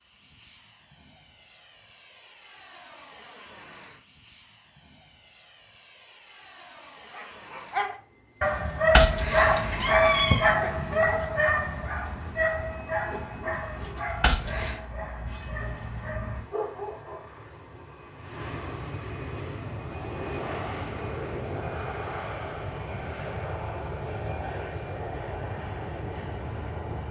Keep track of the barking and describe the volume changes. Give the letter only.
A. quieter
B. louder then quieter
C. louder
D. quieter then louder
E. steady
A.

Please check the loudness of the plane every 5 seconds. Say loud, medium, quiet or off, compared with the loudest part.
quiet, quiet, quiet, medium, loud, loud.